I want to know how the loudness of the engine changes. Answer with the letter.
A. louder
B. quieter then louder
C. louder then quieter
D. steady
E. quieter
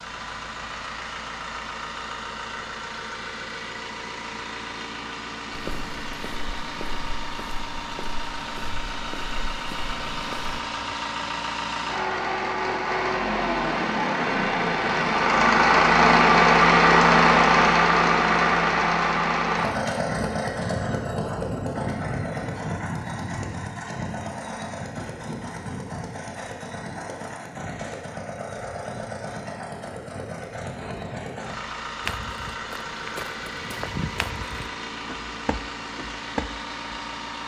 C.